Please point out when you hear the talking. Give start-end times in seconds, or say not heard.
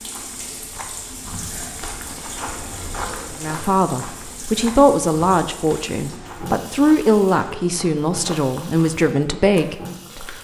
3.4-10.3.